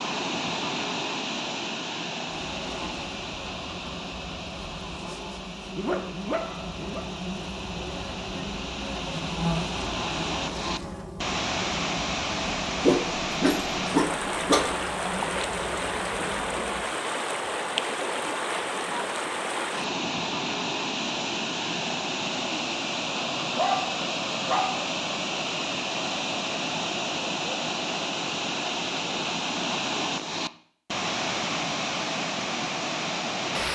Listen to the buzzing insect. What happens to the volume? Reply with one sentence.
The volume of the buzzing insect goes up, then down.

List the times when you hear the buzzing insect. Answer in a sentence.
You can hear the buzzing insect from 2.2 to 16.9 s.